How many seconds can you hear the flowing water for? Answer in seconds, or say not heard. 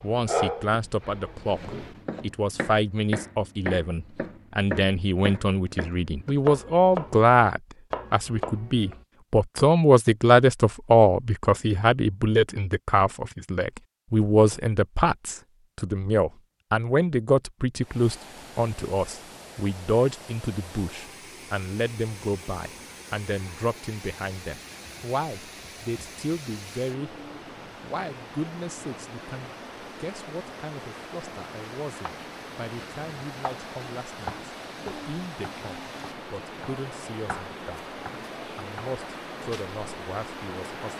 23 s.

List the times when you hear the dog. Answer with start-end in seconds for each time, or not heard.
0.0-2.0.